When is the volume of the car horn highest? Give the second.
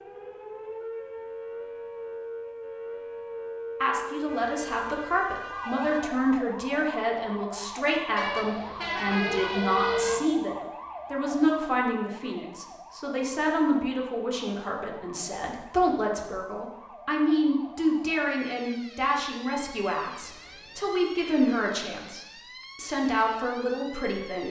10 s.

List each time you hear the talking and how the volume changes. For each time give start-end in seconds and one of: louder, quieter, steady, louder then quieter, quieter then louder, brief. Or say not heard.
3.8-24.4 steady.